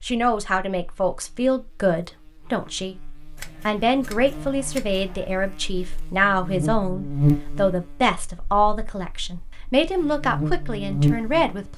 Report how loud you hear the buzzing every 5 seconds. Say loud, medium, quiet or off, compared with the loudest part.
quiet, loud, loud.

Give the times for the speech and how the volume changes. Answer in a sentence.
You can hear the speech from 0.0 to 11.7 s, at a steady volume.